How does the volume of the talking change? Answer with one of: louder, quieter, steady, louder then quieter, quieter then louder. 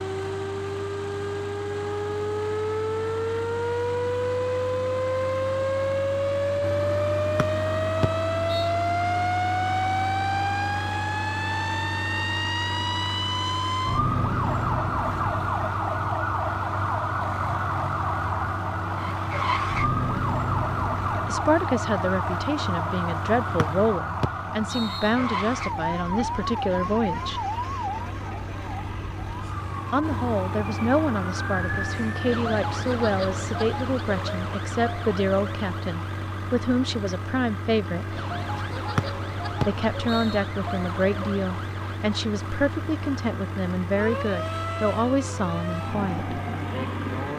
steady.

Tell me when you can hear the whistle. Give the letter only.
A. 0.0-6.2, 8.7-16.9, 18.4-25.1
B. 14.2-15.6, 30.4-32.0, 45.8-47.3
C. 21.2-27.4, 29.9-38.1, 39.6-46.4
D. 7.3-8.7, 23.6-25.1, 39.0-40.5
D.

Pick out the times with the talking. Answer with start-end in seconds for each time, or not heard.
21.2-27.4, 29.9-38.1, 39.6-46.4.